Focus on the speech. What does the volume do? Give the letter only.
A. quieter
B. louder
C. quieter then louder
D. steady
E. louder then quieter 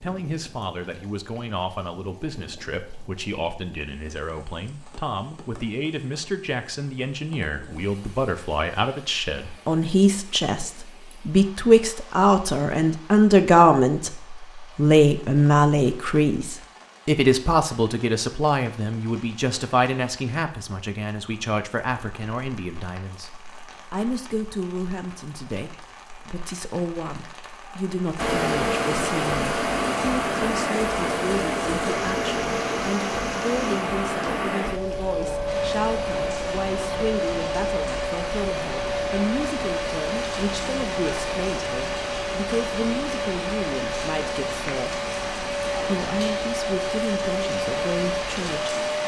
E.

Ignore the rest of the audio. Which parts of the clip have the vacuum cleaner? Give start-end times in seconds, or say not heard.
28.1-49.0.